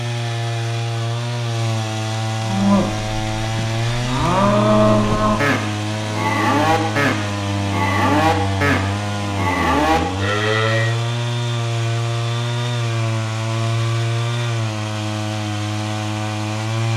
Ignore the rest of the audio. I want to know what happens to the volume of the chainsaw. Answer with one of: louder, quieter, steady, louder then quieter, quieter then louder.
steady.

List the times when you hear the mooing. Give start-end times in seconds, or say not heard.
2.4-10.9.